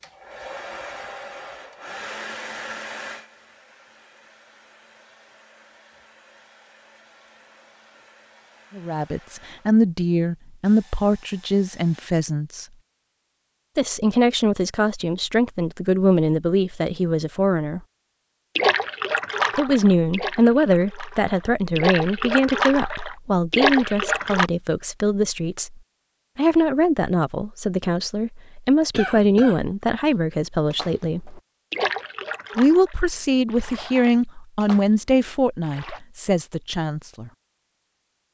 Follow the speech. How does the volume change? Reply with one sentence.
The volume of the speech stays about the same.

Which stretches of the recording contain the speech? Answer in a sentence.
The speech can be heard from 8.8 to 12.7 s, from 13.8 to 17.8 s, from 19.6 to 31.4 s and from 32.5 to 37.3 s.